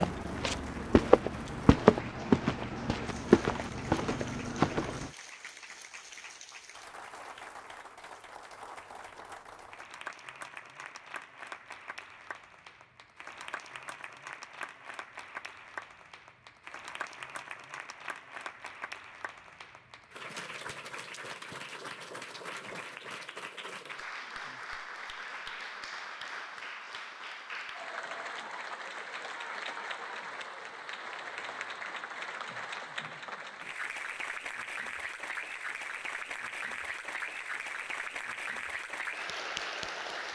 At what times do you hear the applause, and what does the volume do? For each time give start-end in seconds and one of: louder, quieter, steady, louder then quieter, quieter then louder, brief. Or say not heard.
0.0-40.2 louder.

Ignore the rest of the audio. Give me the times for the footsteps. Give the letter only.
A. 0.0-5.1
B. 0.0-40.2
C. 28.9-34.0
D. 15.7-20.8
A.